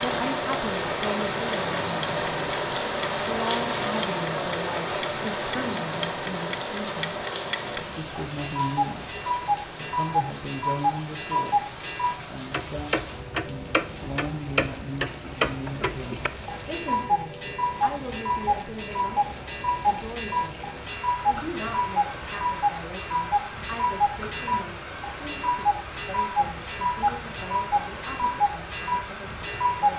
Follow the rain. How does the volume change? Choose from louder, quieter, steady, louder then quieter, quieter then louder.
quieter.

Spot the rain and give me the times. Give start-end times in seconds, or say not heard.
0.0-29.9.